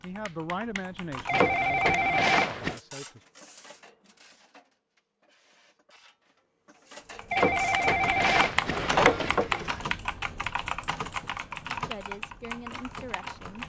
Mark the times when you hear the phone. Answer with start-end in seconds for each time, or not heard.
1.2-2.8, 7.3-9.6.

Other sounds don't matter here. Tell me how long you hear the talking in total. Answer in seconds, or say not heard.
5 s.